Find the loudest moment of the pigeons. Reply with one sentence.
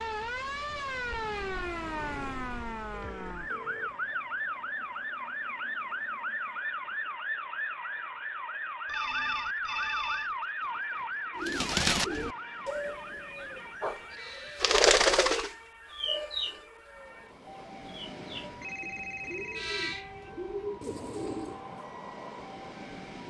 The volume of the pigeons peaks at 15 seconds.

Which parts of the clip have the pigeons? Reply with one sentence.
The pigeons can be heard from 11.3 to 21.6 s.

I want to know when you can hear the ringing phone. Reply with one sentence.
The ringing phone can be heard from 2.9 to 3.9 s, from 8.8 to 10.3 s and from 18.4 to 19.7 s.